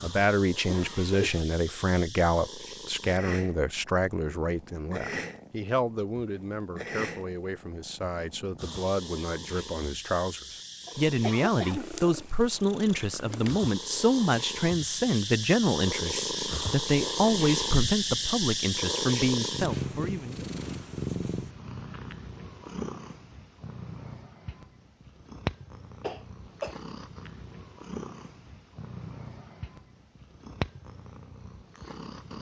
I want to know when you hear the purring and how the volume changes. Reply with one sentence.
The purring can be heard from 0.0 to 32.3 s, getting louder then quieter.